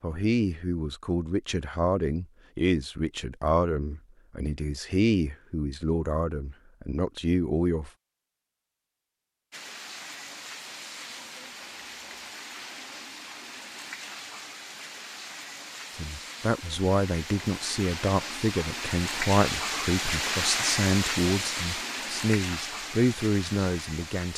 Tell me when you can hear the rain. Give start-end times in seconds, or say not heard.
9.5-24.3.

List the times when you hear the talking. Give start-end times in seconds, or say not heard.
0.0-7.9, 15.9-24.3.